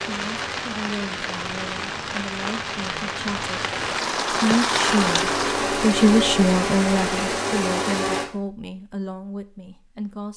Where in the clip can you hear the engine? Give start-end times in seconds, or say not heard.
4.8-8.3.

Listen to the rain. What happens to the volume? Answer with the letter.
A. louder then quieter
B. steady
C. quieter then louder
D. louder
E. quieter
D.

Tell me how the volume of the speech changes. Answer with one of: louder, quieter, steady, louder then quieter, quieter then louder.
louder then quieter.